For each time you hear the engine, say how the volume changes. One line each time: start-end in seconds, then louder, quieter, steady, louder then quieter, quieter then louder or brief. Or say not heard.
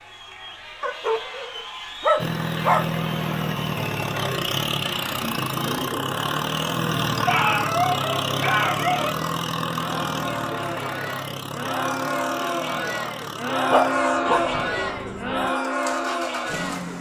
2.1-16.9 quieter.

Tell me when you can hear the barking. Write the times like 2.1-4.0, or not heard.
0.8-2.9, 7.2-9.1, 13.7-14.6.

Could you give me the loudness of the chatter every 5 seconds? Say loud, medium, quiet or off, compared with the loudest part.
medium, medium, loud, loud.